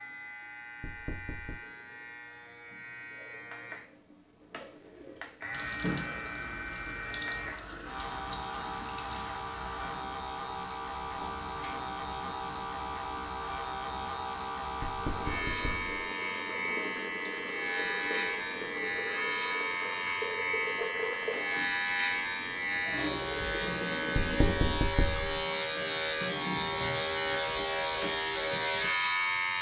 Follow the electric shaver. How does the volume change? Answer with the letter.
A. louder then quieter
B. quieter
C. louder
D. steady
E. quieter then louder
C.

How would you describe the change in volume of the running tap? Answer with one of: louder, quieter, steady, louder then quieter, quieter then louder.
quieter then louder.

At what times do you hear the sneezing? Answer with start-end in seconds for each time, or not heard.
not heard.